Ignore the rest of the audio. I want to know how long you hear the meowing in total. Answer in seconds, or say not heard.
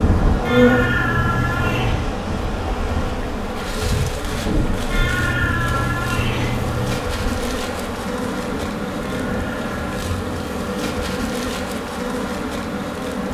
5 s.